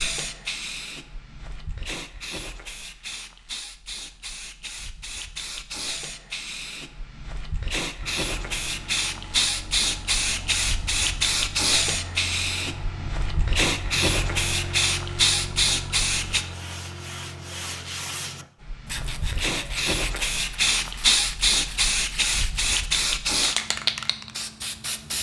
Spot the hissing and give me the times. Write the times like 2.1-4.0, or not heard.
0.0-16.4, 18.6-25.1.